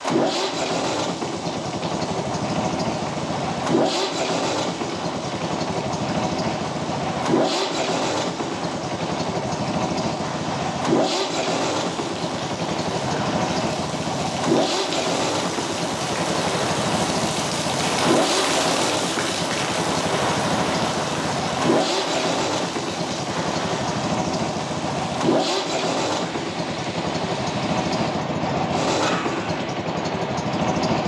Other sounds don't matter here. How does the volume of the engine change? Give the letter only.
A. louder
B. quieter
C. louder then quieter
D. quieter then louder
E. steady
E.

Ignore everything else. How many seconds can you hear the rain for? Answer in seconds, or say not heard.
31 s.